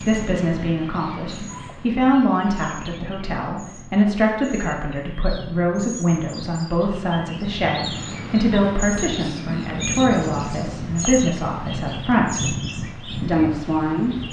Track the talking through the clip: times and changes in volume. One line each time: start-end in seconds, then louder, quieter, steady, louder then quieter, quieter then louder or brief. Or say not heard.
0.0-14.2 steady.